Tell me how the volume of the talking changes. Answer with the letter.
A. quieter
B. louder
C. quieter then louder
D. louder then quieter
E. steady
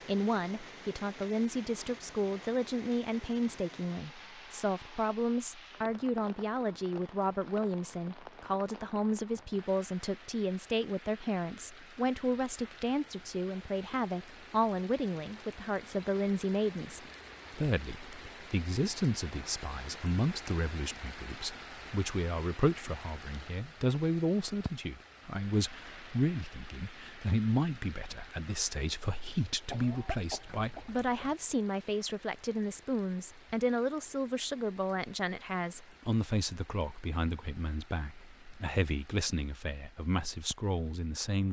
E.